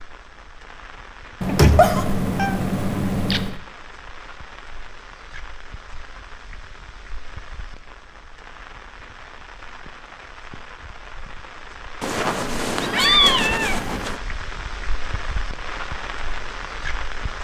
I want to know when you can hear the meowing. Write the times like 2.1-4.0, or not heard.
1.4-3.5, 12.0-14.2.